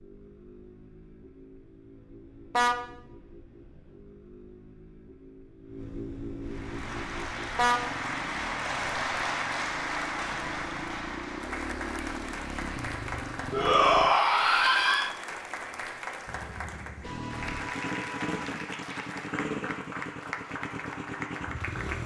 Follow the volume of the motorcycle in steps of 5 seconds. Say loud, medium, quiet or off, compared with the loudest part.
quiet, medium, loud, loud, loud.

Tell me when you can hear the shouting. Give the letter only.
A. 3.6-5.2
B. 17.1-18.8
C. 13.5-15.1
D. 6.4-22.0
C.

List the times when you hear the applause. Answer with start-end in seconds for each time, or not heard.
6.4-22.0.